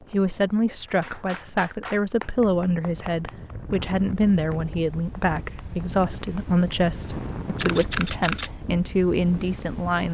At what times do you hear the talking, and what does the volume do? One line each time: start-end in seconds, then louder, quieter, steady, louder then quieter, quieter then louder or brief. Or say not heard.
0.1-10.0 steady.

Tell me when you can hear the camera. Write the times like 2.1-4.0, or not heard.
7.5-8.5.